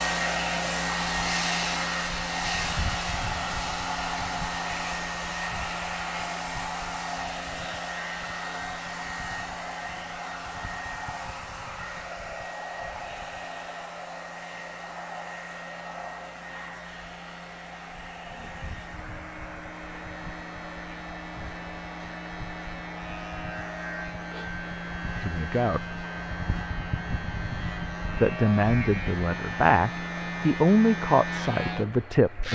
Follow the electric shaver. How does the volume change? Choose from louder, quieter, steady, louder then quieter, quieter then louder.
quieter then louder.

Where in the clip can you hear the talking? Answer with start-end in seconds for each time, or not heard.
25.2-25.9, 28.1-32.4.